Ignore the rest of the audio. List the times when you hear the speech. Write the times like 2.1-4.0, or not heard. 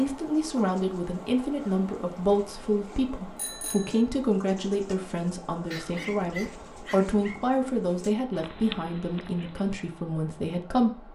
0.0-11.1.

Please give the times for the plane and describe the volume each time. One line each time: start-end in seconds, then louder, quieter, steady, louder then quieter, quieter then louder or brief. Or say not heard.
not heard.